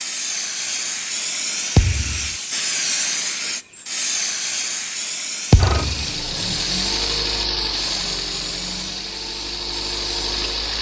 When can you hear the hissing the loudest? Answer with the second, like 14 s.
3 s.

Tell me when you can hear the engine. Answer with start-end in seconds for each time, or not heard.
5.5-10.7.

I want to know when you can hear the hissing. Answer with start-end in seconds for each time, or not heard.
0.0-10.5.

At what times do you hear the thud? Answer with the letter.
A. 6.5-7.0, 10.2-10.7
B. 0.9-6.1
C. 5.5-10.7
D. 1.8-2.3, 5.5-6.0
D.